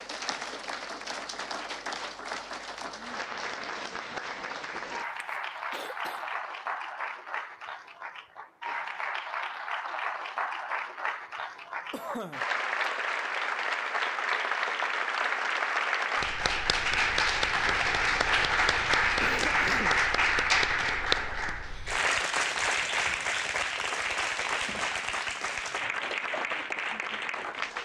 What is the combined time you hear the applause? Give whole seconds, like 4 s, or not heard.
28 s.